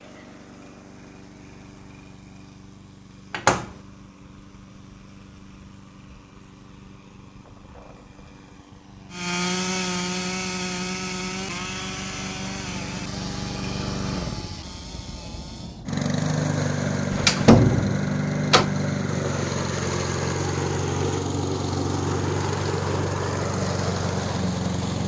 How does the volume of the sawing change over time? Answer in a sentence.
The loudness of the sawing goes down.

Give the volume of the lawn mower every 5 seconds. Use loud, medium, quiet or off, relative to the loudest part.
quiet, quiet, medium, loud, loud.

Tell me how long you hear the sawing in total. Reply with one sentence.
The sawing can be heard for 7 seconds in total.